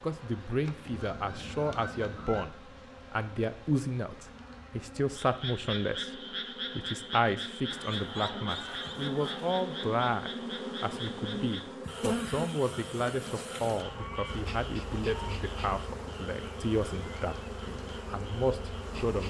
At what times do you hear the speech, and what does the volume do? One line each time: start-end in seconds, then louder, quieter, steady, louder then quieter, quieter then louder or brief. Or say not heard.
0.0-17.4 steady
18.1-19.2 brief.